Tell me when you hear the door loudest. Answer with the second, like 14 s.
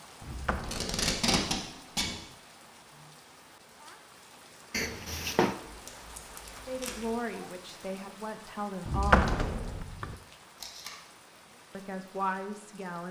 9 s.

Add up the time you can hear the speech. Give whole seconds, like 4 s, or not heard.
4 s.